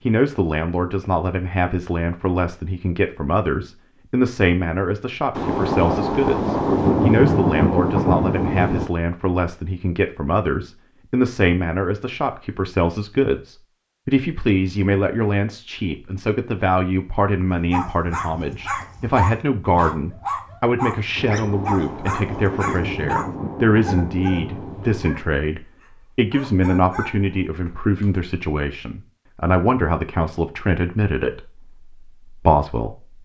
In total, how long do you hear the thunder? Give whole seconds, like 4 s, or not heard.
8 s.